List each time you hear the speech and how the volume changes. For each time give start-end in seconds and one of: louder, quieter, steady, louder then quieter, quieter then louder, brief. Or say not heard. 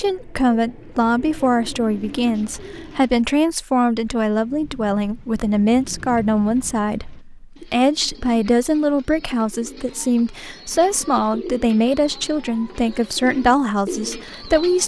0.0-14.8 steady.